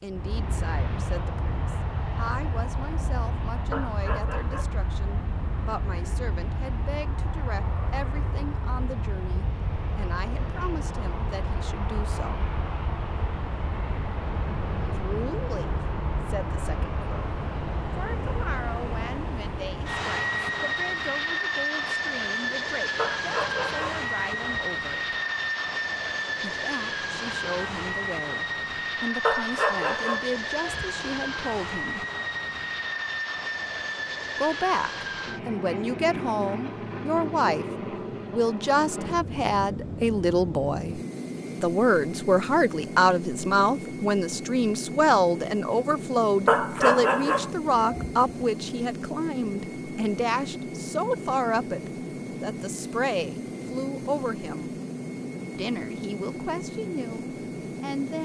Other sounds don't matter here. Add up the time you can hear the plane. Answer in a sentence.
You can hear the plane for 58 seconds altogether.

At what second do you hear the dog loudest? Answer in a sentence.
The volume of the dog peaks at 47 seconds.